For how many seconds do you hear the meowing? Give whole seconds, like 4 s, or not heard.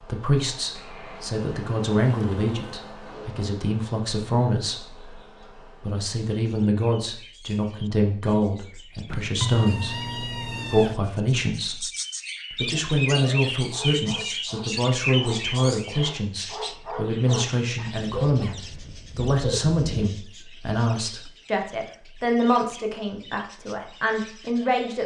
2 s.